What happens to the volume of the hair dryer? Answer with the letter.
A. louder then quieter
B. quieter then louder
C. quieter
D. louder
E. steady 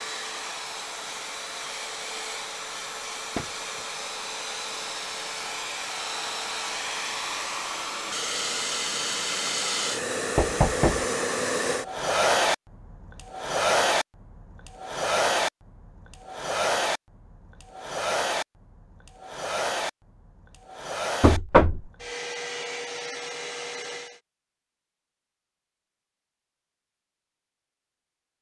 A.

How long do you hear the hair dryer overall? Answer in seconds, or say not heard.
24 s.